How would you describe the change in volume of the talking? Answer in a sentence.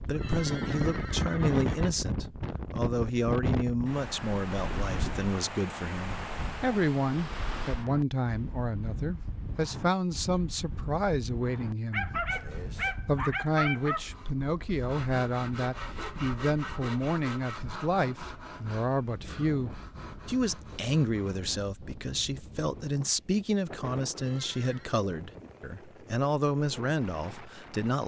The volume of the talking stays about the same.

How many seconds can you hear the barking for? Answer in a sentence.
The barking can be heard for 2 seconds in total.